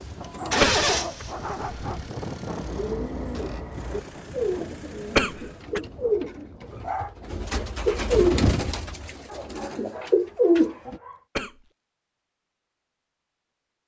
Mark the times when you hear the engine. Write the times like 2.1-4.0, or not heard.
0.0-5.8.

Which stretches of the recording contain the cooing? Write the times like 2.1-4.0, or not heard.
2.6-11.0.